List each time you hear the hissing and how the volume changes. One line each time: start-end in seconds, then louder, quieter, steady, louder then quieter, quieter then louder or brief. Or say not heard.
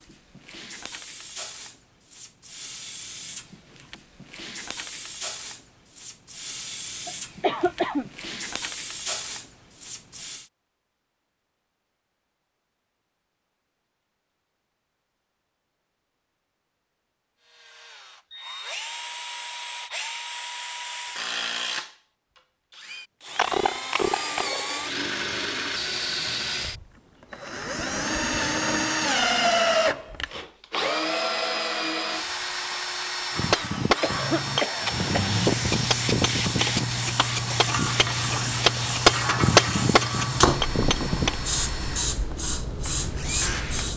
0.0-10.5 louder
34.8-43.9 steady.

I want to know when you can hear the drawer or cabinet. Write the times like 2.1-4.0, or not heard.
not heard.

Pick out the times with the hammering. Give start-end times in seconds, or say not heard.
33.4-41.4.